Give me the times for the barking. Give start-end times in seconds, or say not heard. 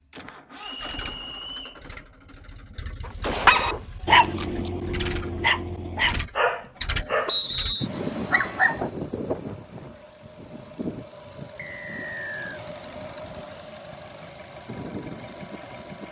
3.4-8.9.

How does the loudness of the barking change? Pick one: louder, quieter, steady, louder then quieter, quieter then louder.
quieter.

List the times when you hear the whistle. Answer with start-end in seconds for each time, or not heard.
0.6-1.8, 7.2-7.9, 11.6-12.6.